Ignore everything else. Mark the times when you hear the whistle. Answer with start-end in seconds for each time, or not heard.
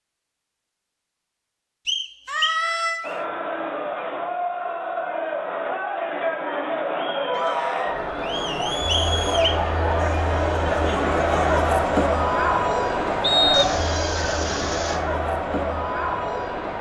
1.9-3.2, 8.8-9.6, 13.2-13.8.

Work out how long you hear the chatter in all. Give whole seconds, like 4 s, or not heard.
14 s.